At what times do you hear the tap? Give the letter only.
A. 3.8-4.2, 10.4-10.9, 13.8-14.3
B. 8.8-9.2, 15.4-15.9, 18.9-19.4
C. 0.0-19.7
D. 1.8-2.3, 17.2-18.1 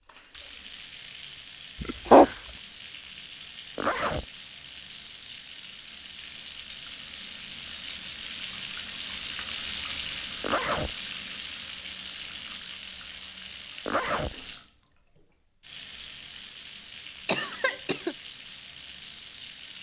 C.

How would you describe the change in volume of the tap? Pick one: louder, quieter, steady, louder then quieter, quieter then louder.
louder then quieter.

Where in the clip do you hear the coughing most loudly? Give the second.
2 s.